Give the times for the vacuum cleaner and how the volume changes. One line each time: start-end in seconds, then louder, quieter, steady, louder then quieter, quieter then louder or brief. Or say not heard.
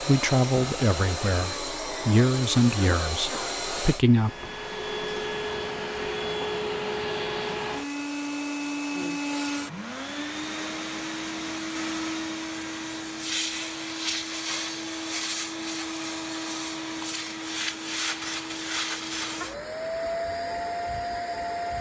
0.0-21.7 steady.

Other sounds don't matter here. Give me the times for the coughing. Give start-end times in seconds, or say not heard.
2.8-3.8.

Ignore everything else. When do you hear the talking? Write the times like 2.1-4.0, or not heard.
0.0-4.3.